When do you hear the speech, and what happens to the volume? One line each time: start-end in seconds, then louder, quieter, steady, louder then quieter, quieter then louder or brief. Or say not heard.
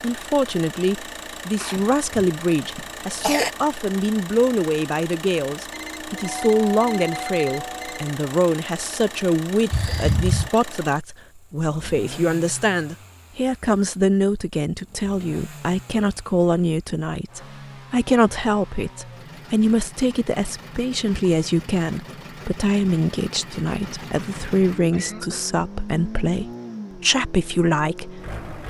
0.0-28.6 steady.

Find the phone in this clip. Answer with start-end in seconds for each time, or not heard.
5.7-8.2.